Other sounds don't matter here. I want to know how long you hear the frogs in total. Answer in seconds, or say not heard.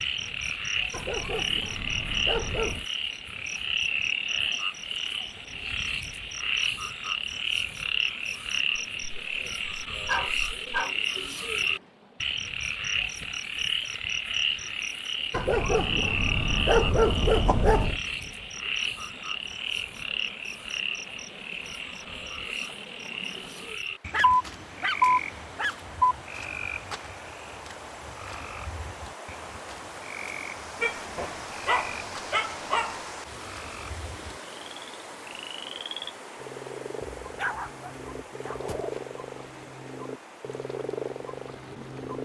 42 s.